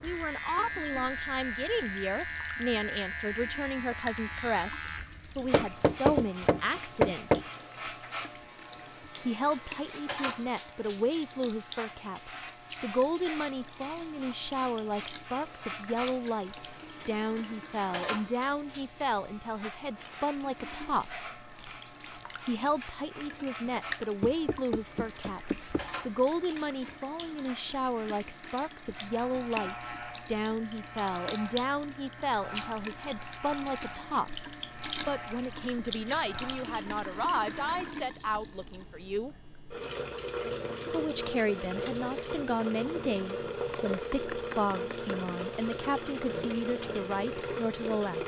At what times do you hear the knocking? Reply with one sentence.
You can hear the knocking from 5.5 to 7.5 s, from 24.2 to 25.9 s and from 43.7 to 45.4 s.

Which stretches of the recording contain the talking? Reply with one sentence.
You can hear the talking from 0.0 to 7.5 s, from 9.2 to 21.1 s, from 22.4 to 34.4 s, from 35.0 to 39.4 s and from 40.9 to 48.2 s.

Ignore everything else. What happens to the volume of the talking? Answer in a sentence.
The loudness of the talking stays about the same.